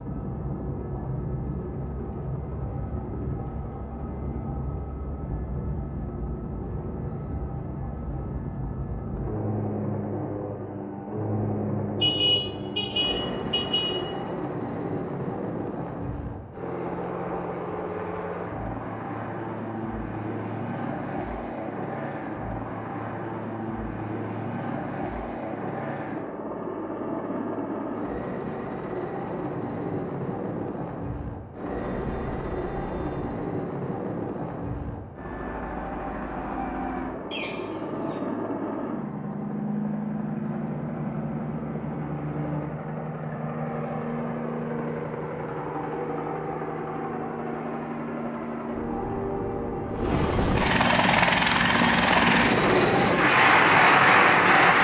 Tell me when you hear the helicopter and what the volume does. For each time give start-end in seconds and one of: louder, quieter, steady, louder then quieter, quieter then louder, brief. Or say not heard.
0.0-54.7 louder.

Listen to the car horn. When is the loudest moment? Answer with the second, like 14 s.
12 s.